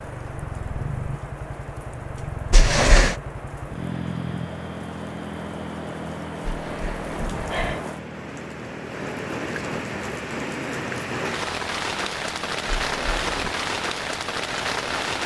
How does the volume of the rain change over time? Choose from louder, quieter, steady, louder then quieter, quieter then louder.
louder.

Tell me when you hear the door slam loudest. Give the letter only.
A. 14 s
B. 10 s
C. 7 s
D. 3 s
D.